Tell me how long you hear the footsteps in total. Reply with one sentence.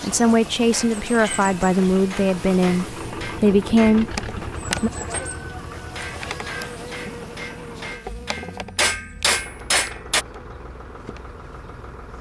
The footsteps can't be heard in this clip.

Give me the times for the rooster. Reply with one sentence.
The rooster can be heard from 4.7 to 6.7 s.